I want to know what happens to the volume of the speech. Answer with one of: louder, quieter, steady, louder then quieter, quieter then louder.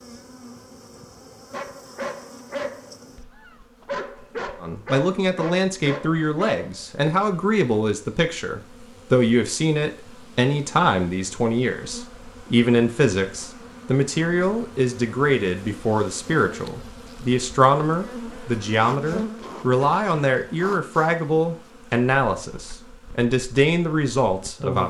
steady.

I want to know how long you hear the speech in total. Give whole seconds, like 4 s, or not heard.
20 s.